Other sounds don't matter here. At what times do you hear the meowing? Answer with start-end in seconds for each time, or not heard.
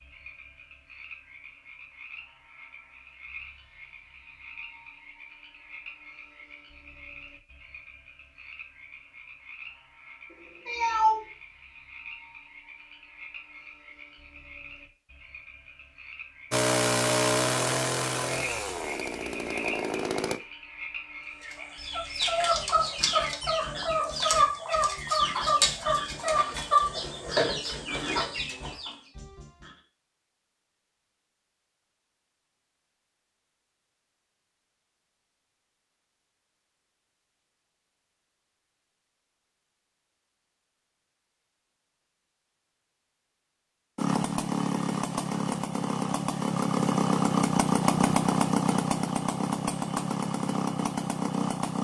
10.3-11.2.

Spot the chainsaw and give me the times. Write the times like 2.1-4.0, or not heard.
16.5-20.4, 44.0-51.8.